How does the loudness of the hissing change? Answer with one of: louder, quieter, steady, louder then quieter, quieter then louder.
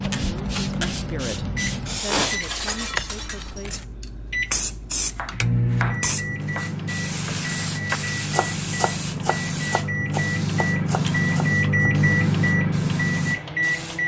quieter.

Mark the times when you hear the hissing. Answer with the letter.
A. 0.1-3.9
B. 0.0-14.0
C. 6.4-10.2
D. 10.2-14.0
B.